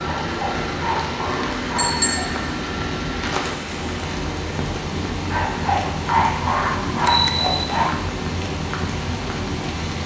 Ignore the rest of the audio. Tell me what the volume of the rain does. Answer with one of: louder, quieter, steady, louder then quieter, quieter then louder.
steady.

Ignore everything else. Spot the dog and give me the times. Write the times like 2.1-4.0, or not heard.
0.0-2.4, 5.3-8.1.